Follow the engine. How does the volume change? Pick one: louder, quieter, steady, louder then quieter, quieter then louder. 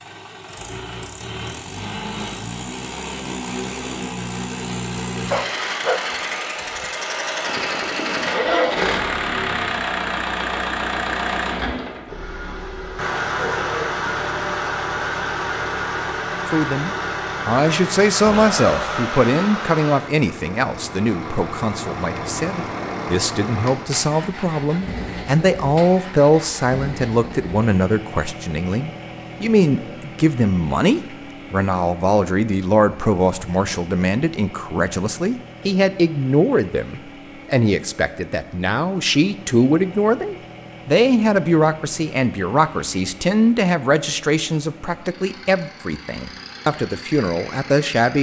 quieter.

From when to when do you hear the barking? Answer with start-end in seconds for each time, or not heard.
5.2-6.8.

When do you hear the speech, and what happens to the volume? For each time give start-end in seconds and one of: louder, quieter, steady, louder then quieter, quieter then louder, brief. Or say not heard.
16.4-48.1 steady.